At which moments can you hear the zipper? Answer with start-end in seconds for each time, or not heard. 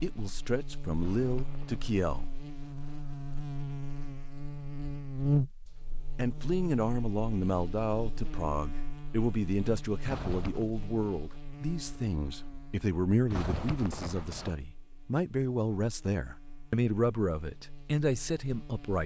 1.0-1.9, 10.1-10.7, 13.3-14.6.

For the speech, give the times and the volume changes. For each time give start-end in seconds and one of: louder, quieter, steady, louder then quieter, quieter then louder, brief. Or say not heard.
0.0-2.3 brief
6.2-19.0 steady.